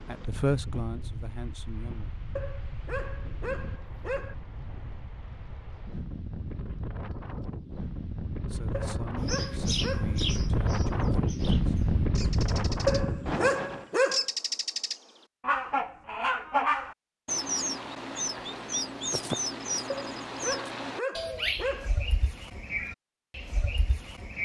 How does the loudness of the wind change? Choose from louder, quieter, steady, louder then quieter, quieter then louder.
louder.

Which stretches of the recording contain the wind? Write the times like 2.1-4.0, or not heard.
0.0-13.9.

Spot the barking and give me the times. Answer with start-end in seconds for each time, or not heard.
2.4-4.3, 8.7-10.2, 12.8-14.2, 19.9-21.9.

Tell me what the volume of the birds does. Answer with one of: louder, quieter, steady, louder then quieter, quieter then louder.
louder then quieter.